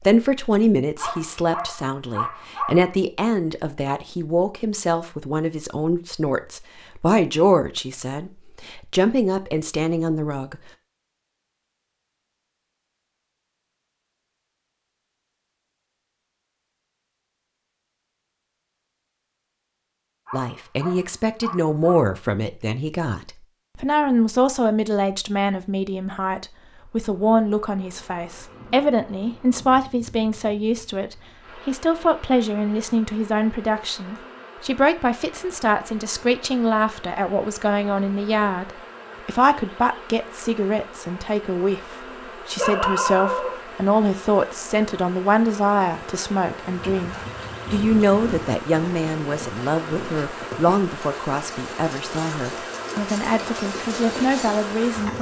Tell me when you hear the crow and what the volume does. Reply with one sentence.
The crow can't be heard in this clip.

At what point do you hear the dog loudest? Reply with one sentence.
The loudest moment of the dog is at 43 seconds.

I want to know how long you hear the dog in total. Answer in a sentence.
The dog can be heard for 5 seconds in total.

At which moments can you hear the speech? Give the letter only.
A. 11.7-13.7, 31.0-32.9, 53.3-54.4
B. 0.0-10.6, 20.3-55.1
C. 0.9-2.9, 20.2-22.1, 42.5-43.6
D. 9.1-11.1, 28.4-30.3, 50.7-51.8
B.